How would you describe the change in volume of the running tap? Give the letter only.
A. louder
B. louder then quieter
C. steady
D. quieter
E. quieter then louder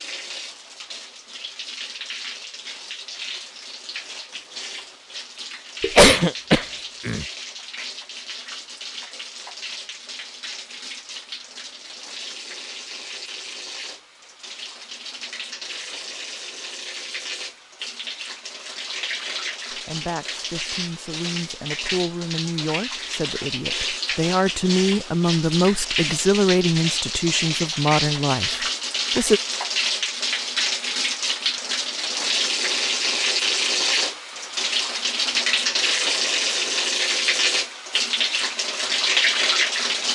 A.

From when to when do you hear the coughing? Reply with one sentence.
You can hear the coughing from 5.8 to 7.2 s.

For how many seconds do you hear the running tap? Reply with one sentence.
You can hear the running tap for 40 seconds altogether.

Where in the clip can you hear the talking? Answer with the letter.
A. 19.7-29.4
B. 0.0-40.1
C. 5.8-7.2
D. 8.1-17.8
A.